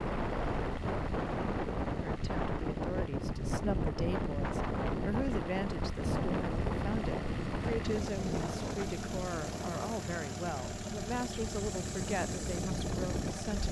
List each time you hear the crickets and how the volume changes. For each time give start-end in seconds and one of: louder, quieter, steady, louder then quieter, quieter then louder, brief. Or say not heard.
not heard.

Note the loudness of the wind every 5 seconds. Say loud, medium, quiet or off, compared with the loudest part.
loud, loud, medium.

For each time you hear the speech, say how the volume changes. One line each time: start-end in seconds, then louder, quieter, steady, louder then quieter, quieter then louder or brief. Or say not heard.
2.1-13.6 steady.